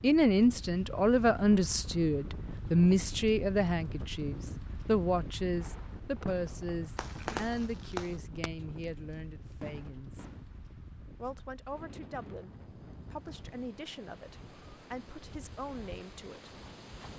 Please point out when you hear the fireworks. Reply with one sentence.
You can hear the fireworks from 5.5 to 8.9 s and from 9.6 to 11.3 s.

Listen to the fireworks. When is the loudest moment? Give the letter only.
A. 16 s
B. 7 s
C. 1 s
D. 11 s
B.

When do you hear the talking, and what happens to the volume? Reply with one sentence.
You can hear the talking from 0.0 to 10.3 s, getting quieter; and from 11.2 to 16.5 s, at a steady volume.